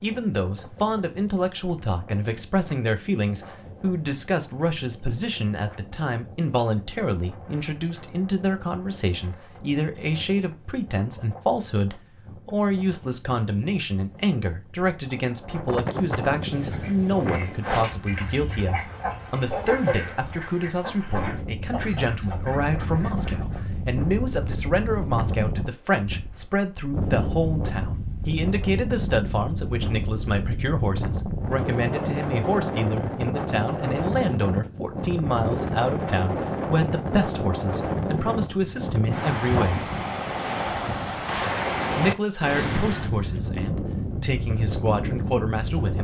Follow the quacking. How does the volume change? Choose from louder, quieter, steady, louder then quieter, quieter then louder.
quieter.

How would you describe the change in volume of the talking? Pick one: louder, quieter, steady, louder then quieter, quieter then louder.
steady.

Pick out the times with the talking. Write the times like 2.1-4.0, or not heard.
0.0-39.9, 42.0-45.9.